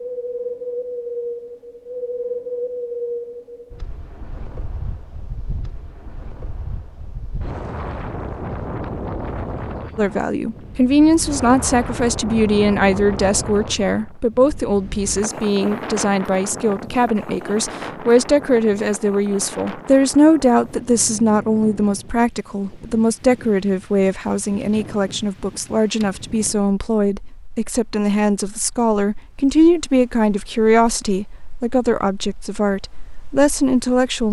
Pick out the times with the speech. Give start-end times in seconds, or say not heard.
9.9-34.2.